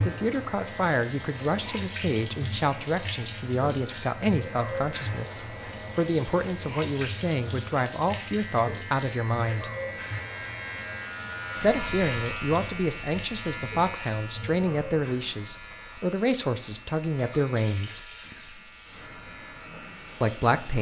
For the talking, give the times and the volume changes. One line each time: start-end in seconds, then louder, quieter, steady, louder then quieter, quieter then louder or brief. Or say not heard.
0.0-9.7 steady
11.6-18.0 steady
20.2-20.7 brief.